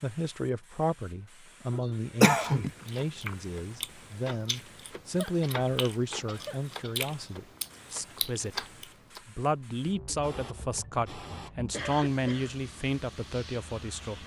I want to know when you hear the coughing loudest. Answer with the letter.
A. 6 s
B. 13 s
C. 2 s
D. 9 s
C.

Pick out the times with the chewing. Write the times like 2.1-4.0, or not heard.
2.6-9.2.